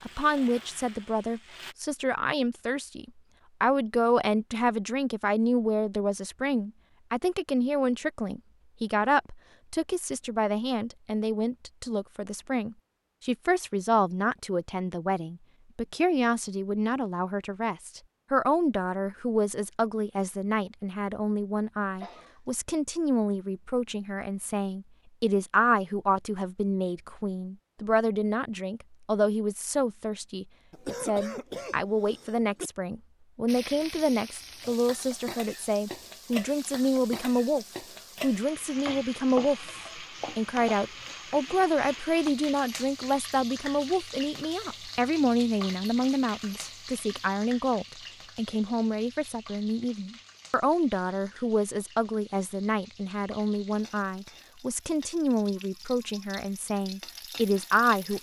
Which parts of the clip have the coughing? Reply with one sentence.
You can hear the coughing from 21.9 to 22.4 s and from 30.7 to 32.7 s.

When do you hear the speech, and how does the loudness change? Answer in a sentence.
You can hear the speech from 0.0 to 58.1 s, at a steady volume.